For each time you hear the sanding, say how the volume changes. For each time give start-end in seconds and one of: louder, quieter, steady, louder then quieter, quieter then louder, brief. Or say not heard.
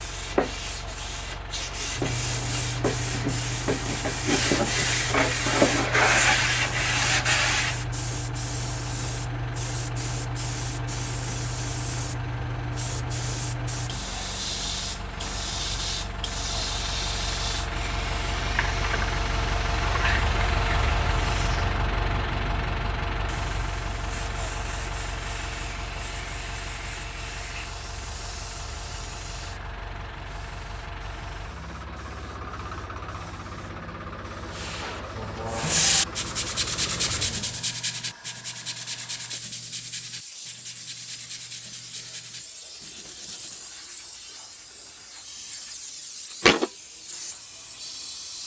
0.0-7.8 louder
34.5-43.7 quieter.